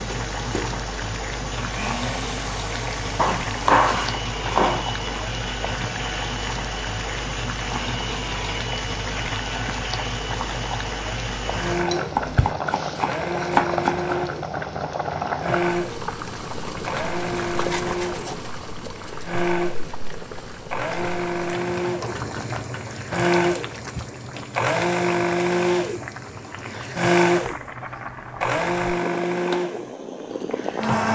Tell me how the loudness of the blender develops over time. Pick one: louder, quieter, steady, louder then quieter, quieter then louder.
louder.